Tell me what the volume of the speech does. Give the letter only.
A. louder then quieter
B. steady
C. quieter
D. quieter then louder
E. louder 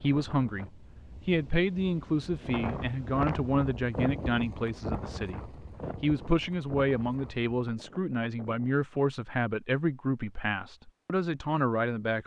B.